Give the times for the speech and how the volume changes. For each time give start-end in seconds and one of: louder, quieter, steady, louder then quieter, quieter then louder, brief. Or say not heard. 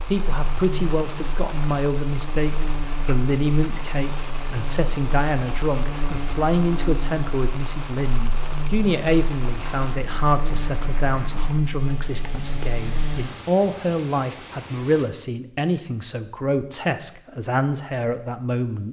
0.1-18.8 steady.